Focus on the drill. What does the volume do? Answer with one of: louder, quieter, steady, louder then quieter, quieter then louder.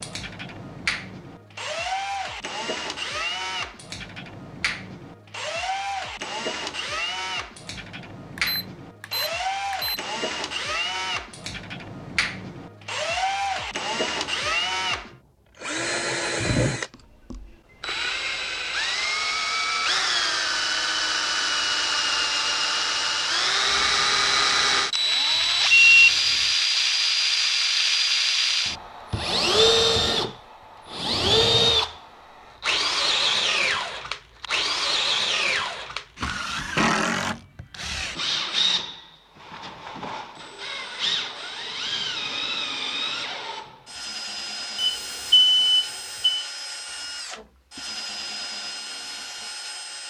louder then quieter.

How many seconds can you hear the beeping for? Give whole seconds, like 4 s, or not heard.
4 s.